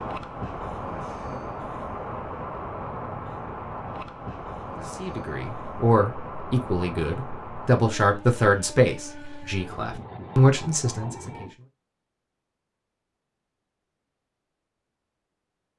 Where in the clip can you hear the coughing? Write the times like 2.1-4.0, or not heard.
not heard.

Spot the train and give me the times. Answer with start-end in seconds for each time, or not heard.
0.0-11.6.